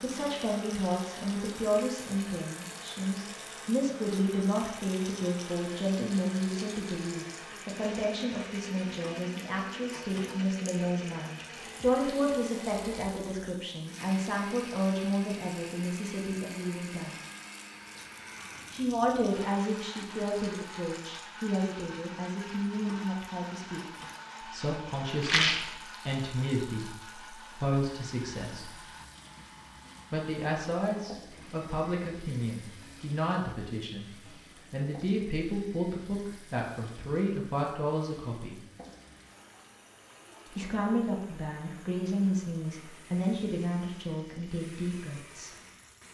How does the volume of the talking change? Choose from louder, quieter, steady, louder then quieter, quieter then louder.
steady.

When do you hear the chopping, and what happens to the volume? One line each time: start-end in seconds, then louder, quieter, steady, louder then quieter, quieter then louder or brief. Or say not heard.
not heard.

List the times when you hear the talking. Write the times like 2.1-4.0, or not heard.
0.0-17.2, 18.7-28.8, 30.1-38.6, 40.5-45.5.